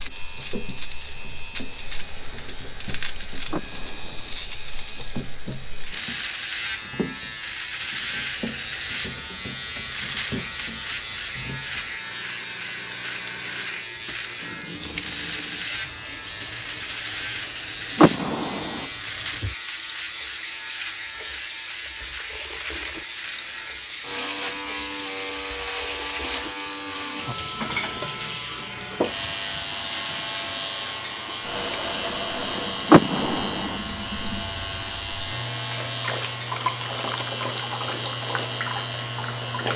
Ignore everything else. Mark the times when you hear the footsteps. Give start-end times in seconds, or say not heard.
not heard.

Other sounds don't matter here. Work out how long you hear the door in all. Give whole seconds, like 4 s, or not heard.
3 s.